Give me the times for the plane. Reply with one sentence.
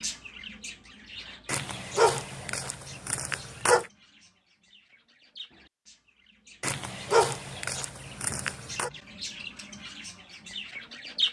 You can't hear the plane here.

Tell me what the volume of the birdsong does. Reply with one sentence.
The volume of the birdsong goes down, then up.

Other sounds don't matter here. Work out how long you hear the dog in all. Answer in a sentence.
The dog can be heard for 5 seconds in total.